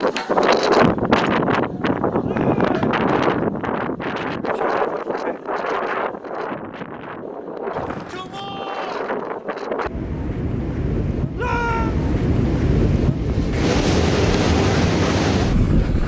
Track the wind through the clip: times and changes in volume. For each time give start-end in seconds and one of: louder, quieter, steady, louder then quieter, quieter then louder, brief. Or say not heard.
0.0-16.0 quieter then louder.